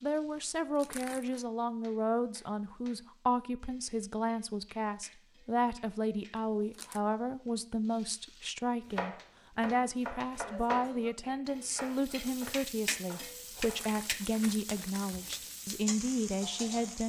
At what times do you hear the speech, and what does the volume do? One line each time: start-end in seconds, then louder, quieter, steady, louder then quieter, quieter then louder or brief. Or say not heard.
0.0-17.0 steady.